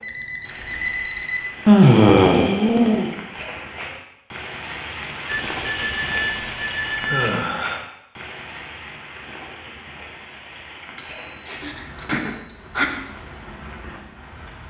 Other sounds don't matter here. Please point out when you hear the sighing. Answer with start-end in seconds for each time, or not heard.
1.6-3.1, 7.0-7.8, 11.5-12.8.